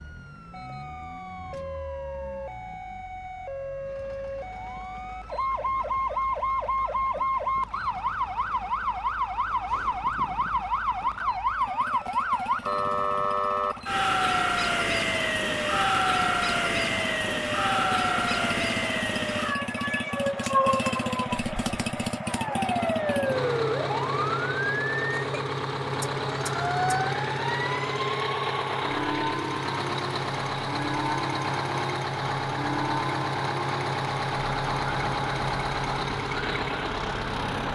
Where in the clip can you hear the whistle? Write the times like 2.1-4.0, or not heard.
not heard.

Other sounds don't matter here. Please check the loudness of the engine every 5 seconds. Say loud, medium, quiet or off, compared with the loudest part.
quiet, quiet, quiet, medium, loud, loud, loud, loud.